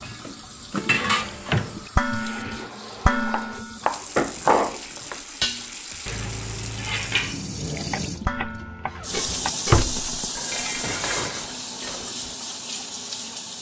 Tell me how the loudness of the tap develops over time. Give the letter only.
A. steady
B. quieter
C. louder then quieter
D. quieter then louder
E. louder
E.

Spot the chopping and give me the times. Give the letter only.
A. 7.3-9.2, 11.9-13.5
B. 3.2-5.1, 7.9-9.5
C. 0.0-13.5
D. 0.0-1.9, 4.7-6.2
B.